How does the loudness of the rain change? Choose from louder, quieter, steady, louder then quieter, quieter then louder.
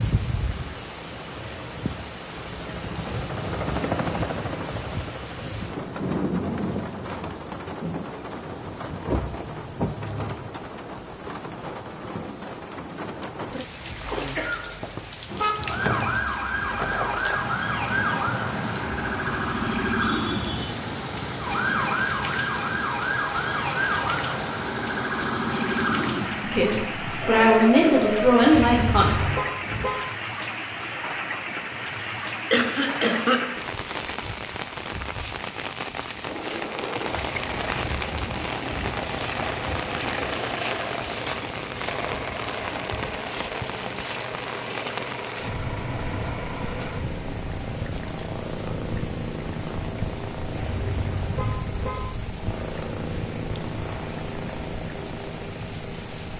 steady.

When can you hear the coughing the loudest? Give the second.
33 s.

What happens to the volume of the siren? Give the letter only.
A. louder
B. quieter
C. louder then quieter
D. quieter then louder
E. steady
E.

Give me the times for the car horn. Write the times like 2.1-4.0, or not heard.
15.3-15.9, 28.5-30.1, 50.5-52.0.